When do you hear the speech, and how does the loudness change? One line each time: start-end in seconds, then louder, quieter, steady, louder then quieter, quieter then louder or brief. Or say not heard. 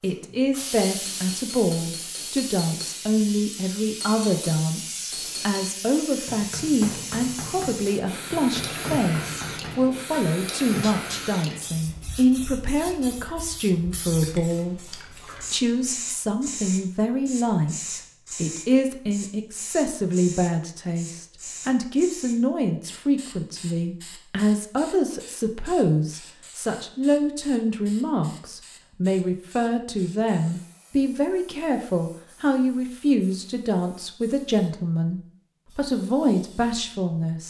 0.0-37.4 steady.